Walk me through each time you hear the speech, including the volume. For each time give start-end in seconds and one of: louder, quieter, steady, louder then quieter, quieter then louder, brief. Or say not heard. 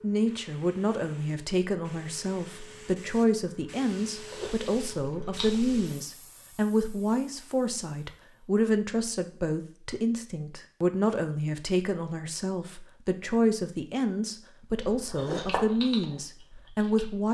0.0-17.2 steady.